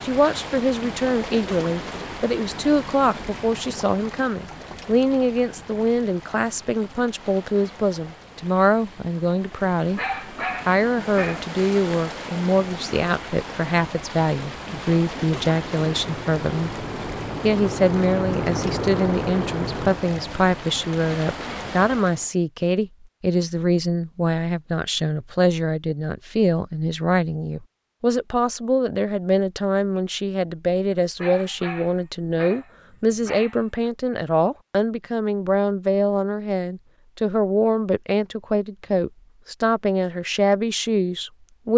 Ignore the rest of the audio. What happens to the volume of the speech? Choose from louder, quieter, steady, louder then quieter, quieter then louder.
steady.